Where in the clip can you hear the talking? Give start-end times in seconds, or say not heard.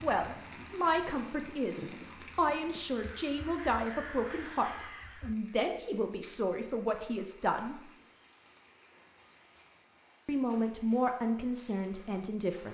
0.0-7.8, 10.2-12.6.